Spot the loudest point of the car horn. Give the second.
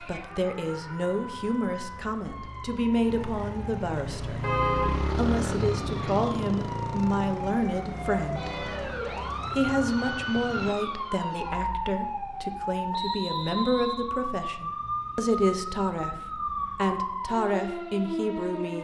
5 s.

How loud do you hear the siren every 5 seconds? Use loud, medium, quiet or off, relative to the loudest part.
medium, loud, loud, loud.